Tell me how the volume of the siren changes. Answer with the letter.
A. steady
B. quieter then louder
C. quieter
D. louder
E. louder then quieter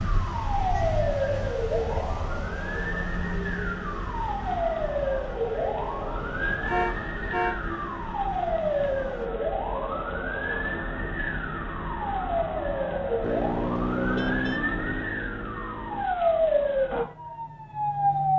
A.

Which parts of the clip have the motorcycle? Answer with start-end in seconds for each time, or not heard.
13.2-16.1.